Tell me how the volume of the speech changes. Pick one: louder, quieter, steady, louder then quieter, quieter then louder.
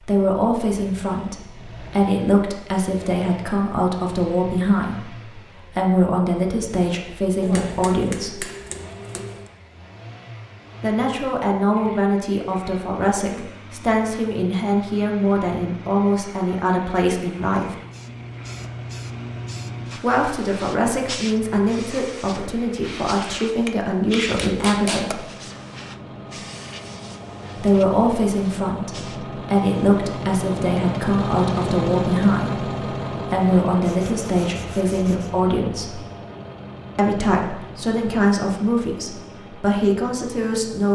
steady.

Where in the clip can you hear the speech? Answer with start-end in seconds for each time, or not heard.
0.0-8.4, 10.8-17.8, 19.9-25.2, 27.6-36.0, 37.0-40.8.